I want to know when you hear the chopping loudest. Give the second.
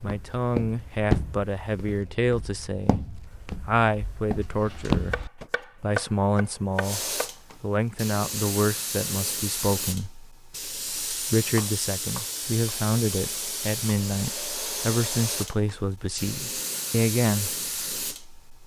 6 s.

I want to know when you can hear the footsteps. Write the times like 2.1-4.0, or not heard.
0.0-5.5.